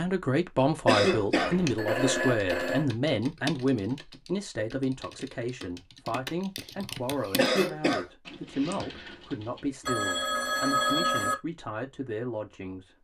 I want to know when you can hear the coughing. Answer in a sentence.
You can hear the coughing from 0.8 to 1.6 s and from 7.3 to 8.1 s.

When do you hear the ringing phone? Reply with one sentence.
You can hear the ringing phone from 1.4 to 2.9 s and from 9.8 to 11.3 s.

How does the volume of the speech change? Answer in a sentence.
The volume of the speech goes down.